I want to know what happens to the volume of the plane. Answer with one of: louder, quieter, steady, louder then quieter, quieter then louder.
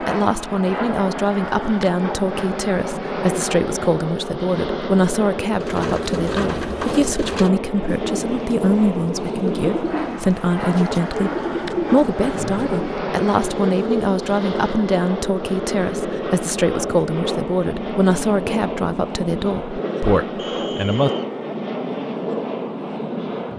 steady.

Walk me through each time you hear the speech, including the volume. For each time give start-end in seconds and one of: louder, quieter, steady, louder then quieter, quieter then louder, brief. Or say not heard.
0.0-21.1 steady.